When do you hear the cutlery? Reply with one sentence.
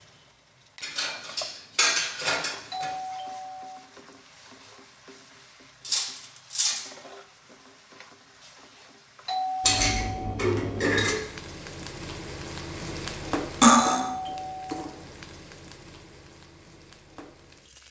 The cutlery can be heard from 0.8 to 2.9 s, from 5.8 to 6.8 s, from 9.6 to 11.2 s and from 13.6 to 14.1 s.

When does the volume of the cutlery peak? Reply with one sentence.
The loudest moment of the cutlery is at 14 seconds.